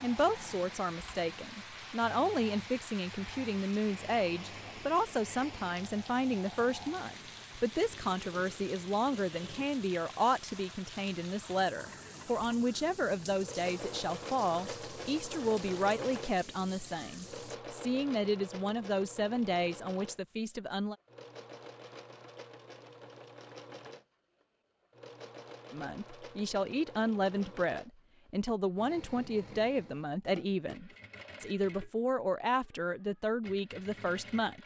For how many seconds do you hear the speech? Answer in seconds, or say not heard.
30 s.